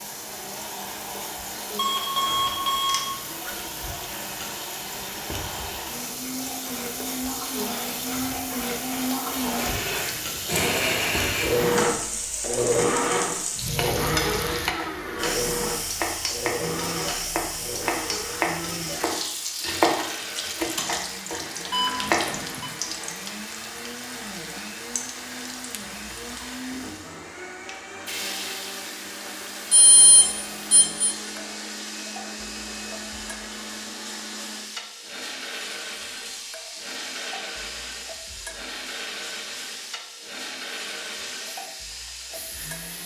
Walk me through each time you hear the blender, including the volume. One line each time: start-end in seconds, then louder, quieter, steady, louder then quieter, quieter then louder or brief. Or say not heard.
0.0-43.0 louder then quieter.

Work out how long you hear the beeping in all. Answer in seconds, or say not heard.
4 s.